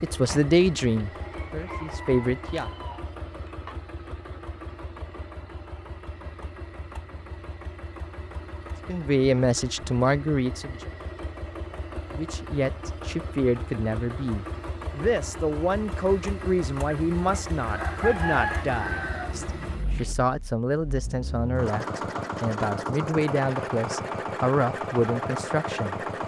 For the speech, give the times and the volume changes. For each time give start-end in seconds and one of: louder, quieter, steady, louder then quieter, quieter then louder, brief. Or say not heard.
0.0-2.6 brief
8.8-10.8 brief
12.2-25.9 steady.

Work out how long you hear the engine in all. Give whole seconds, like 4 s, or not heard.
26 s.